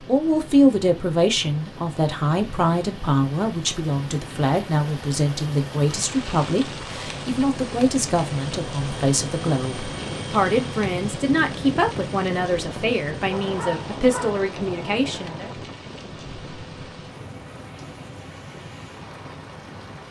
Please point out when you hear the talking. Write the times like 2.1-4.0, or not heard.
0.1-15.5.